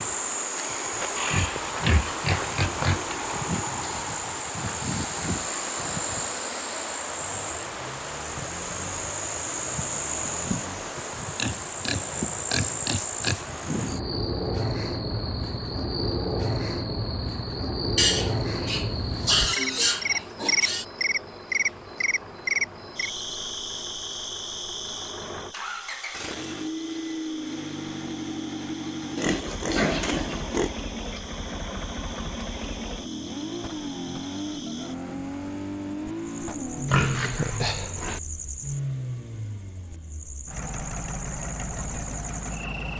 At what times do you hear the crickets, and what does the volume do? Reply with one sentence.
You can hear the crickets from 0.0 to 42.9 s, getting quieter.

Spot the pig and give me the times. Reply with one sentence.
You can hear the pig from 1.1 to 3.1 s, from 11.3 to 13.4 s, from 17.9 to 20.9 s, from 29.1 to 30.7 s and from 36.9 to 38.2 s.